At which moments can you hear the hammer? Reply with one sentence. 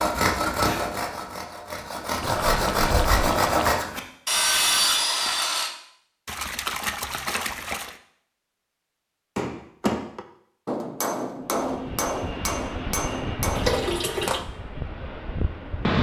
You can hear the hammer from 9.3 to 14.4 s.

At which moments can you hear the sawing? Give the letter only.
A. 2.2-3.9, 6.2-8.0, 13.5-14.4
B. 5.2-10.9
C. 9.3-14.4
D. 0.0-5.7
D.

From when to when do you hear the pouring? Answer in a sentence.
You can hear the pouring from 2.2 to 3.9 s, from 6.2 to 8.0 s and from 13.5 to 14.4 s.